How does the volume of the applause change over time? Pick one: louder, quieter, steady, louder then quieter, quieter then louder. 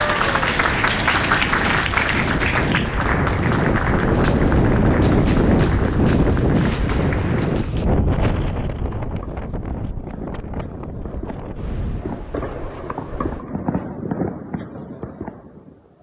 quieter.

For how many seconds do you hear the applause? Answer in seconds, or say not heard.
8 s.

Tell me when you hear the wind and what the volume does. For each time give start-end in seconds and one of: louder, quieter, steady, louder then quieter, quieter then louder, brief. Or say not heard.
0.0-13.4 louder then quieter.